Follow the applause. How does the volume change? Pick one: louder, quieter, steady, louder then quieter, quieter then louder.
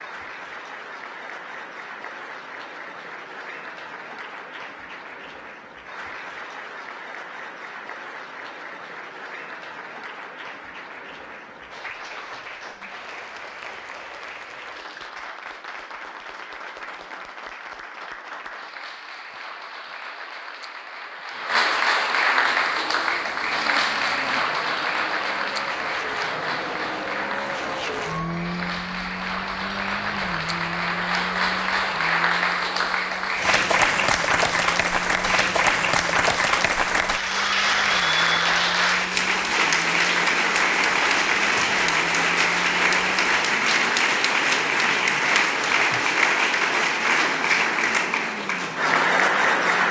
louder.